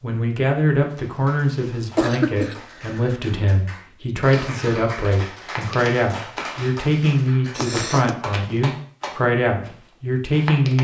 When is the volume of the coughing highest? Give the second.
2 s.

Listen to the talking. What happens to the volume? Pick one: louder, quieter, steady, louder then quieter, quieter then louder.
steady.